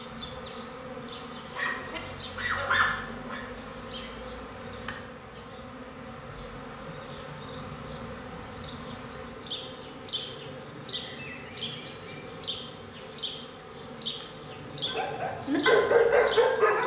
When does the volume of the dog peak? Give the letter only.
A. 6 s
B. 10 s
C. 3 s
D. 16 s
D.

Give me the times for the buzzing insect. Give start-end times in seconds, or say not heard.
0.0-16.8.